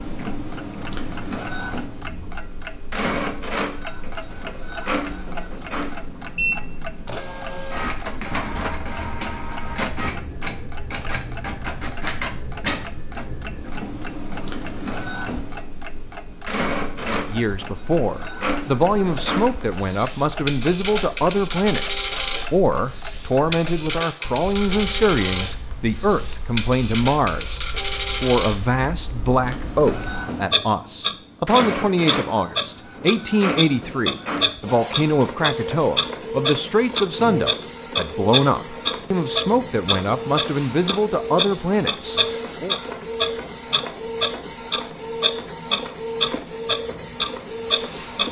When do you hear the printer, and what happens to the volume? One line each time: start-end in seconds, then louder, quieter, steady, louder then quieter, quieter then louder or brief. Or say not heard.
0.0-48.2 steady.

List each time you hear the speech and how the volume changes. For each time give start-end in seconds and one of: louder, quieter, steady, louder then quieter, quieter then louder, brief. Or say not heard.
17.0-42.8 steady.